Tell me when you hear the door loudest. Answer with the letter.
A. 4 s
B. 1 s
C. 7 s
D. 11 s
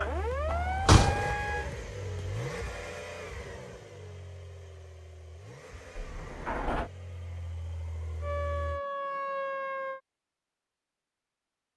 B.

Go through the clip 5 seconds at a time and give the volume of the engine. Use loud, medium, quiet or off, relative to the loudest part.
loud, medium, off.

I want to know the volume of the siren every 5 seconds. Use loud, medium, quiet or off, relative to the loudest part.
loud, loud, off.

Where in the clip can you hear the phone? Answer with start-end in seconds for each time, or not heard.
not heard.